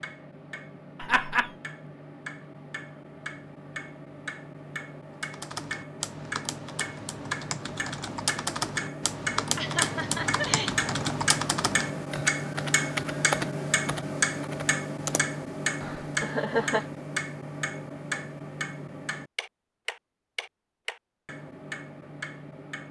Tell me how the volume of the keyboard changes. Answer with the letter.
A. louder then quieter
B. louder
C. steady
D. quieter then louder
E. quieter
A.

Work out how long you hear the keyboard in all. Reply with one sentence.
You can hear the keyboard for 11 seconds altogether.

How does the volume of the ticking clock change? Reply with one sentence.
The volume of the ticking clock goes up, then down.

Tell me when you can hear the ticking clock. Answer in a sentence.
The ticking clock can be heard from 0.0 to 22.8 s.